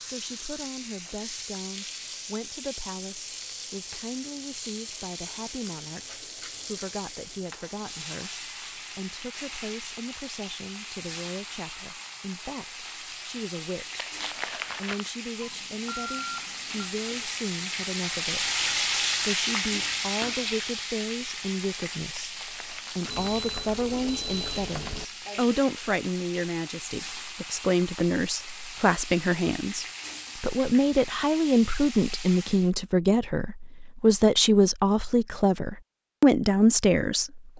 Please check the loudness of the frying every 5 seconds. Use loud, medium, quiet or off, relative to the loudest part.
medium, medium, medium, loud, medium, medium, medium, off.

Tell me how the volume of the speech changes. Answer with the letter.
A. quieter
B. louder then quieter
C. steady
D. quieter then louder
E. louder
E.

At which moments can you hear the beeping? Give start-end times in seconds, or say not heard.
15.4-16.9, 23.1-25.1.